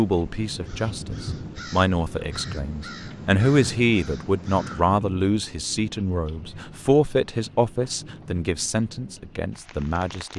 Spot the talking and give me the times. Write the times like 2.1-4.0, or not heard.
0.0-10.3.